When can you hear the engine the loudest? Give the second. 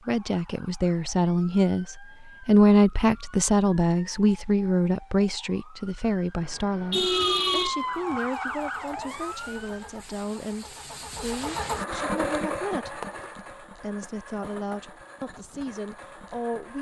12 s.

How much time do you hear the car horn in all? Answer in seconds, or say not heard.
2 s.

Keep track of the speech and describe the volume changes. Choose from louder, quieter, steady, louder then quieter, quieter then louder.
quieter.